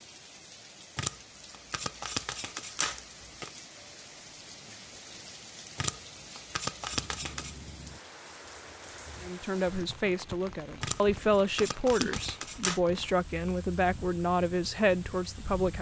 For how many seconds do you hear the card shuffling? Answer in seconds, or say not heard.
6 s.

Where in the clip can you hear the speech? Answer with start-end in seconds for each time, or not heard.
9.2-15.7.